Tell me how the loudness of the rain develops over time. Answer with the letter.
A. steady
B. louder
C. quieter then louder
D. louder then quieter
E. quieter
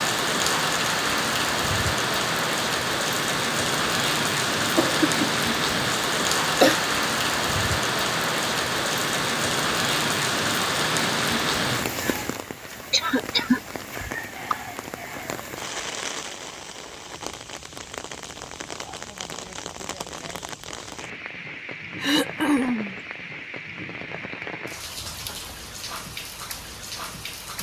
E.